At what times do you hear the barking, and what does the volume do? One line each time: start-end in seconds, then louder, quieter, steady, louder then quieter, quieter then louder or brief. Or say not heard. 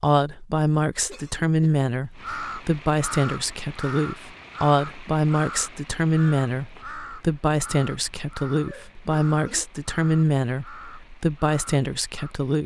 not heard.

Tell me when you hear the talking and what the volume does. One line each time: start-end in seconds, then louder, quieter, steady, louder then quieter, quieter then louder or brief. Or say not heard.
0.0-12.6 steady.